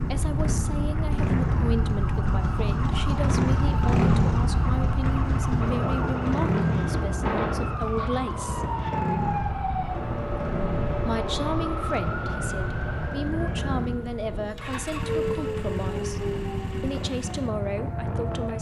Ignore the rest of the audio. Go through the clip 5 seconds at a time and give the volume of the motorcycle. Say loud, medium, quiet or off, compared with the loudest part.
loud, loud, medium, medium.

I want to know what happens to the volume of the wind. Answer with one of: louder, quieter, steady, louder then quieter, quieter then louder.
quieter.